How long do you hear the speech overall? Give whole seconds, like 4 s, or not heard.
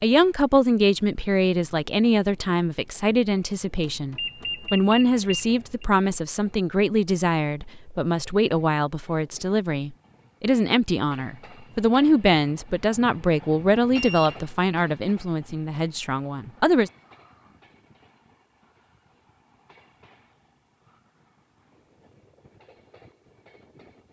17 s.